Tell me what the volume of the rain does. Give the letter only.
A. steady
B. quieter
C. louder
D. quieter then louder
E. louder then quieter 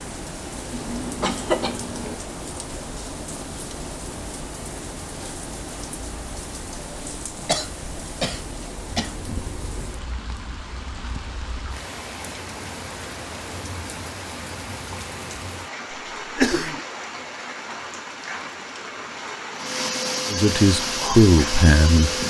A.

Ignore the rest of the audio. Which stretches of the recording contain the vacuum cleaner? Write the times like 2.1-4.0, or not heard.
19.6-22.2.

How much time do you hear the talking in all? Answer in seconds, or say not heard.
2 s.